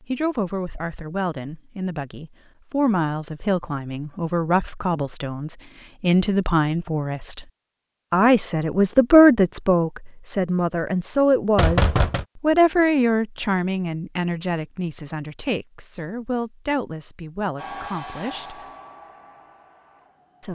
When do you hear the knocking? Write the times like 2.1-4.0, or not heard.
11.6-12.2.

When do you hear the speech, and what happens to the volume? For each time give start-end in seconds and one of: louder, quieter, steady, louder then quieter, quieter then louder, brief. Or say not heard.
0.0-7.5 louder
8.1-18.6 quieter.